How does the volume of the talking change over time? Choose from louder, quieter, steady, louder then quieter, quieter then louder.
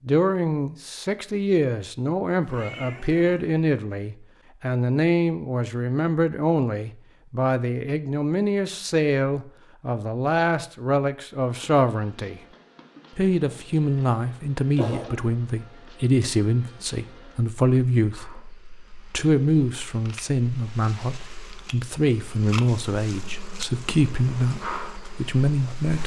steady.